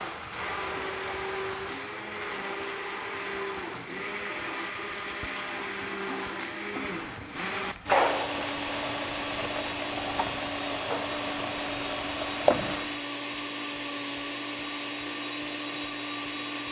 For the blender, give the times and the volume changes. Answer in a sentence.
The blender can be heard from 0.0 to 16.6 s, at a steady volume.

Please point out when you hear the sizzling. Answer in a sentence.
You can hear the sizzling from 0.0 to 13.0 s.